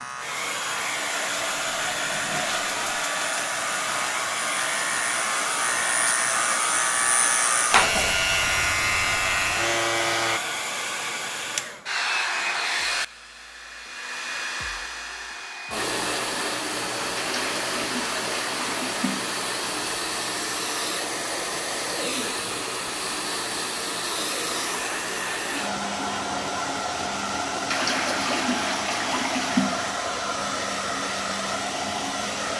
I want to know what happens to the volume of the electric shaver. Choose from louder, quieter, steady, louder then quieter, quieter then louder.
louder.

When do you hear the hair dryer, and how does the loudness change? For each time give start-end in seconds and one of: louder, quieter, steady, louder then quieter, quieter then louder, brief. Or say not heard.
0.0-32.5 steady.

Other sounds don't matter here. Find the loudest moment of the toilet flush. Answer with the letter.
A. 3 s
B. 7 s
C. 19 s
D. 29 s
D.